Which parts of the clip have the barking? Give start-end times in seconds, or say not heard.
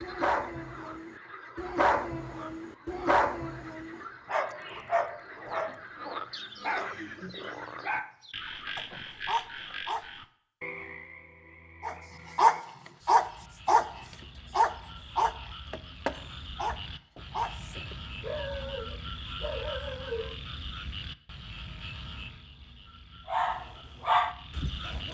0.0-10.1, 11.8-20.4, 23.2-25.0.